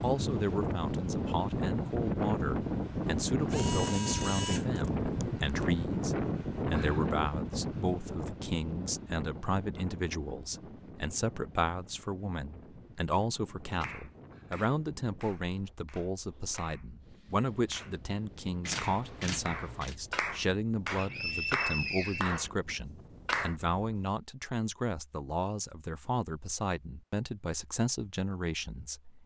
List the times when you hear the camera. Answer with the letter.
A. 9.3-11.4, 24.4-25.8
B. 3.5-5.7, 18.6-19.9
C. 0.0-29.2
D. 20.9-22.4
B.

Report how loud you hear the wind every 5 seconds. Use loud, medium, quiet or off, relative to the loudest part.
loud, loud, quiet, quiet, quiet, off.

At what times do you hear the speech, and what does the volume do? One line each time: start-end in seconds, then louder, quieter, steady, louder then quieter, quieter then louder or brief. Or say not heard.
0.0-29.2 steady.